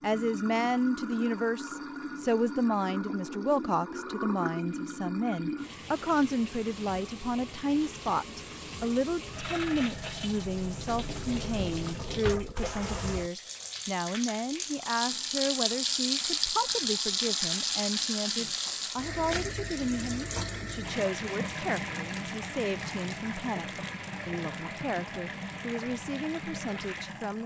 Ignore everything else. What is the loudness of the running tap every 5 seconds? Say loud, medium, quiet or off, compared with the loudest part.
medium, medium, medium, loud, medium, medium.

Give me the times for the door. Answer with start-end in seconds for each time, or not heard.
not heard.